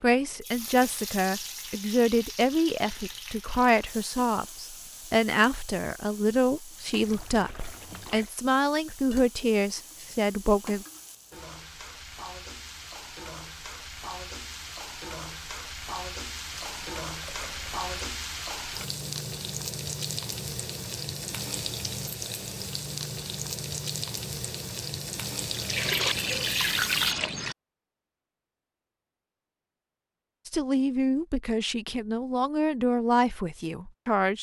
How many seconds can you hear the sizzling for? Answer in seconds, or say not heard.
27 s.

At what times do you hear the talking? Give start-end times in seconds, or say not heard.
0.0-10.8, 30.4-34.3.